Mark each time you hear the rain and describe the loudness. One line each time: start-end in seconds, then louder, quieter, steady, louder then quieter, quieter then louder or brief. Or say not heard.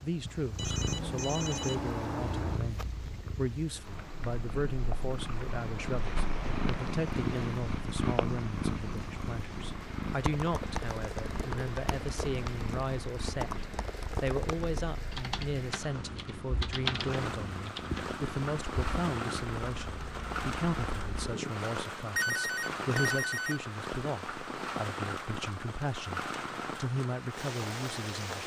0.0-28.4 louder.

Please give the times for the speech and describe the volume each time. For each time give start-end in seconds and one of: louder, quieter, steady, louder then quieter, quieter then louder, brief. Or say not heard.
0.0-28.4 steady.